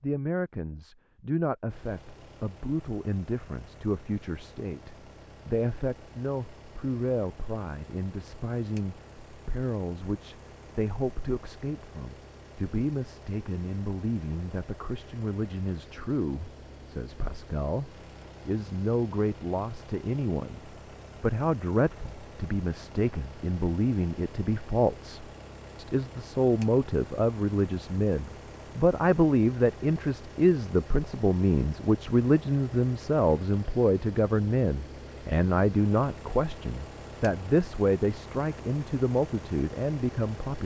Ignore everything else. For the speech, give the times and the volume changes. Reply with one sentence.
You can hear the speech from 0.0 to 40.5 s, getting louder.